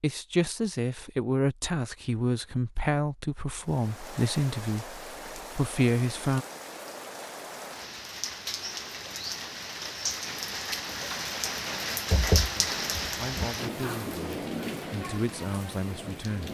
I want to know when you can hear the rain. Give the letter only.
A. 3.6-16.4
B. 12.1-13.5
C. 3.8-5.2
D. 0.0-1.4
A.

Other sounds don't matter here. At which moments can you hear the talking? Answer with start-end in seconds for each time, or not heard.
0.0-6.5, 12.6-16.4.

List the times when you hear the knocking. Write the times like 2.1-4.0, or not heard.
12.1-13.5.